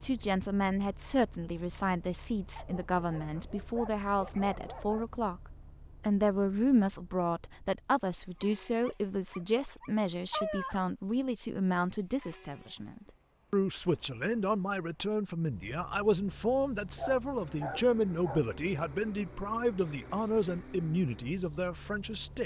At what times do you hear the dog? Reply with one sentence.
The dog can be heard from 2.5 to 5.0 s, from 8.8 to 10.8 s and from 16.9 to 18.4 s.